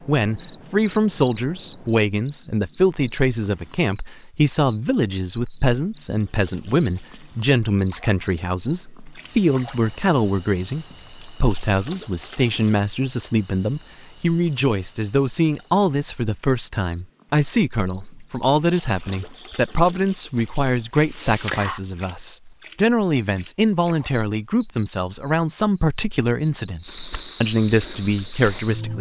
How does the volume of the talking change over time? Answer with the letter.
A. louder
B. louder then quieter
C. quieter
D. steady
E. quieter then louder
D.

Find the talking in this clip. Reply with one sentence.
You can hear the talking from 0.1 to 28.9 s.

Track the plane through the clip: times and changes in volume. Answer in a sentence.
The plane can't be heard in this clip.